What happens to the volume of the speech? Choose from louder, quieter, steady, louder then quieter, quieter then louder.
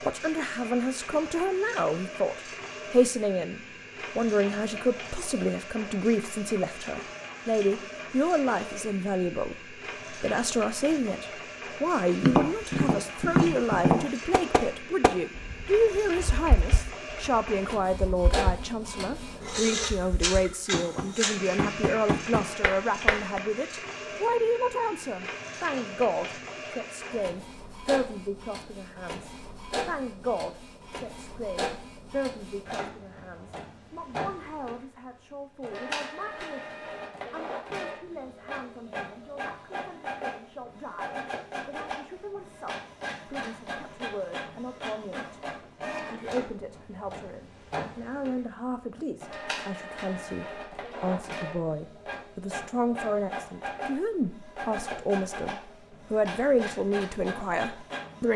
quieter then louder.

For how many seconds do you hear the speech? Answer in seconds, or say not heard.
58 s.